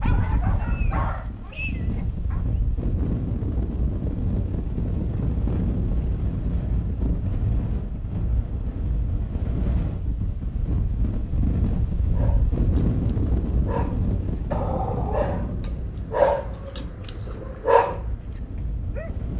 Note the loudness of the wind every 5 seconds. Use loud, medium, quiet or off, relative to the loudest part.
loud, loud, loud, medium.